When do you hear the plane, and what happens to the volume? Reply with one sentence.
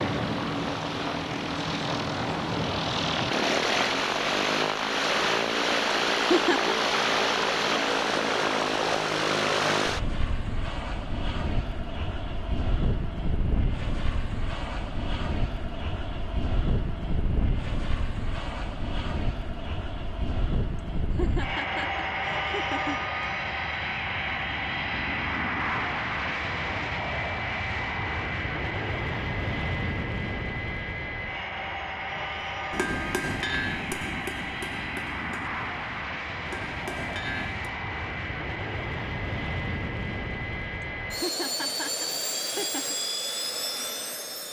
The plane can be heard from 0.0 to 44.4 s, getting quieter.